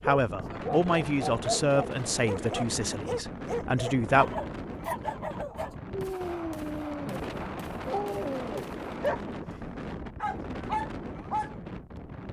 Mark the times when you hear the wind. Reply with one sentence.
The wind can be heard from 0.0 to 12.2 s.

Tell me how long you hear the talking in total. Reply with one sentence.
The talking can be heard for 4 seconds in total.